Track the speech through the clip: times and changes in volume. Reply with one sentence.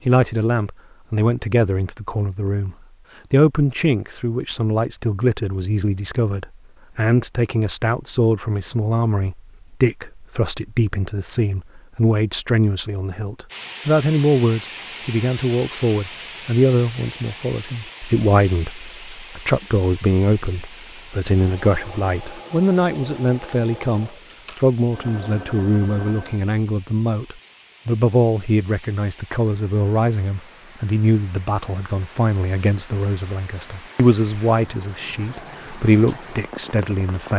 You can hear the speech from 0.1 to 37.3 s, at a steady volume.